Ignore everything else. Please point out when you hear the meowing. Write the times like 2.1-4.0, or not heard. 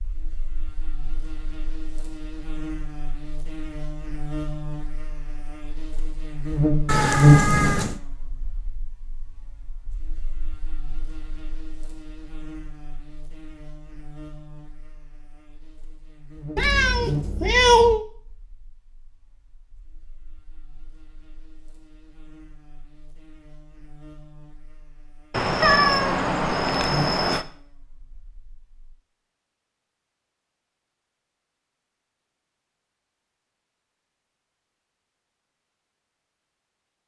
6.8-8.0, 16.6-18.1, 25.3-27.4.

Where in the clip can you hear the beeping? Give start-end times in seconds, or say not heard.
not heard.